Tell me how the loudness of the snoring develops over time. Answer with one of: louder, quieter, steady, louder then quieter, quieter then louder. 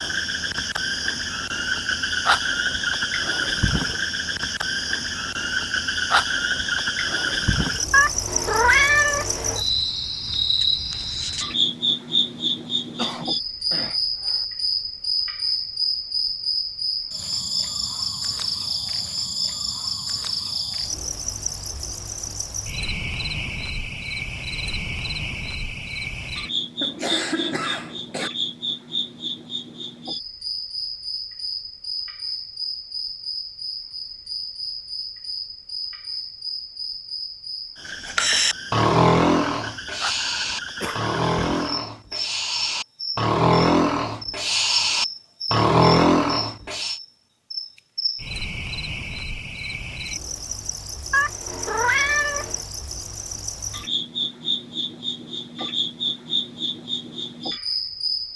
quieter then louder.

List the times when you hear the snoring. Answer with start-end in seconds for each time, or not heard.
38.0-47.0.